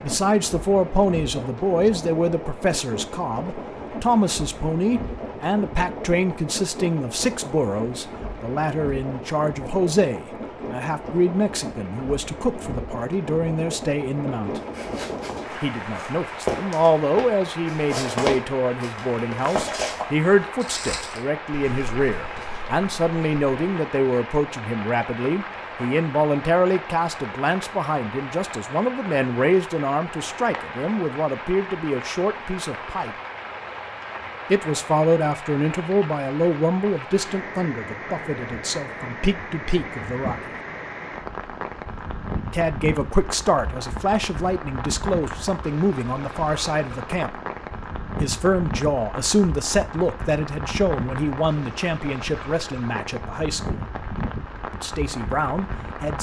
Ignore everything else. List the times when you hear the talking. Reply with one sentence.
The talking can be heard from 0.0 to 14.6 s, from 15.6 to 33.1 s, from 34.5 to 40.5 s, from 42.5 to 47.3 s, from 48.2 to 53.8 s and from 54.7 to 56.1 s.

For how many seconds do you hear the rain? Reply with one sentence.
The rain can be heard for 56 seconds in total.